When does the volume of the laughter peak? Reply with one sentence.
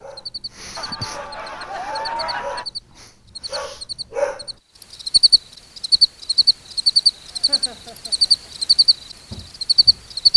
The loudest moment of the laughter is at 2 seconds.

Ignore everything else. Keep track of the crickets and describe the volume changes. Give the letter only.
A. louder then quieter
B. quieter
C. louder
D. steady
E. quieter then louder
C.